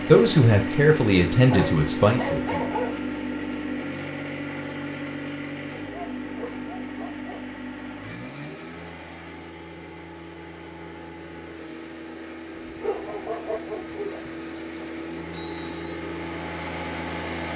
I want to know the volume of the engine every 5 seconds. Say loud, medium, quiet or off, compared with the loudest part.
loud, medium, medium, loud.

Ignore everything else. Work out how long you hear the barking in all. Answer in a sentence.
The barking can be heard for 5 seconds in total.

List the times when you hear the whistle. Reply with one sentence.
The whistle can be heard from 15.3 to 15.9 s.